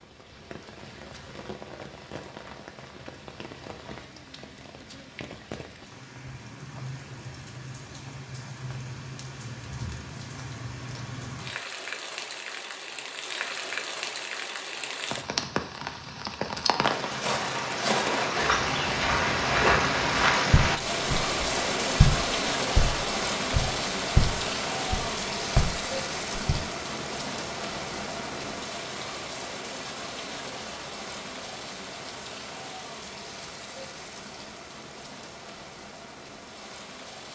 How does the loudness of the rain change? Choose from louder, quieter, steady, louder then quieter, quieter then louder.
louder then quieter.